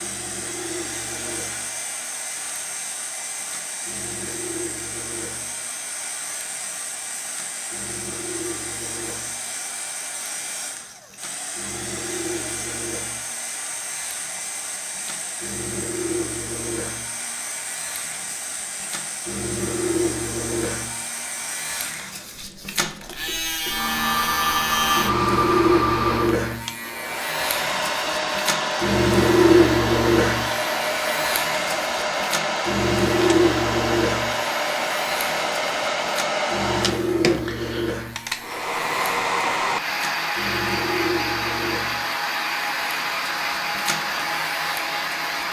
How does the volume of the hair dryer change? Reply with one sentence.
The volume of the hair dryer goes up.